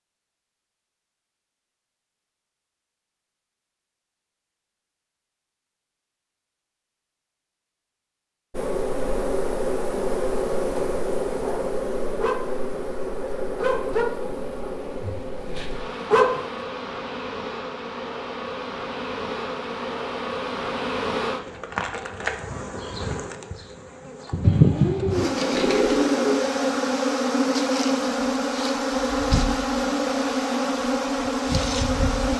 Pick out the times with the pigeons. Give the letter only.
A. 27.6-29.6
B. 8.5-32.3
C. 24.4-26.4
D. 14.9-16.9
C.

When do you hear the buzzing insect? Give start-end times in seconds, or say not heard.
8.5-32.3.